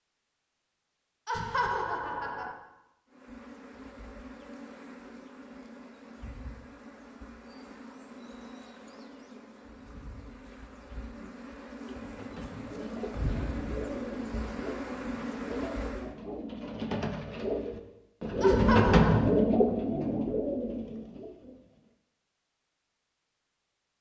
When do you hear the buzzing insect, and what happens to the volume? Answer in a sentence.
You can hear the buzzing insect from 3.1 to 16.1 s, getting louder.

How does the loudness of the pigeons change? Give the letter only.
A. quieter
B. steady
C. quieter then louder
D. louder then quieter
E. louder
D.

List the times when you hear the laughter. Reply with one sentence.
The laughter can be heard from 1.2 to 2.5 s and from 18.4 to 19.2 s.